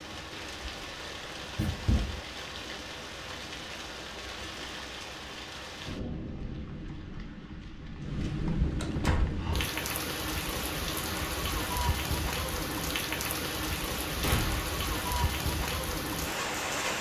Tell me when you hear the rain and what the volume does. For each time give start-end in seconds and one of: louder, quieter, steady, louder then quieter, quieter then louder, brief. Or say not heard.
0.0-16.9 louder.